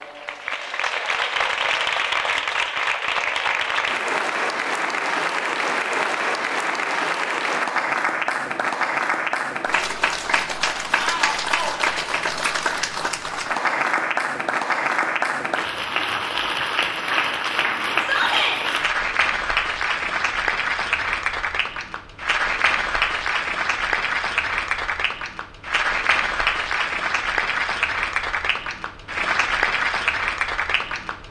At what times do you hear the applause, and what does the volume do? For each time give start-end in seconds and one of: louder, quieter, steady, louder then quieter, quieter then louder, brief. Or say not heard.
0.0-31.2 steady.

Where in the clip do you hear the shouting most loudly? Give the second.
18 s.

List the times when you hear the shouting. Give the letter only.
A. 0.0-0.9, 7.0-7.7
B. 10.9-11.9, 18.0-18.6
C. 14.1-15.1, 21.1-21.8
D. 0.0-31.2
B.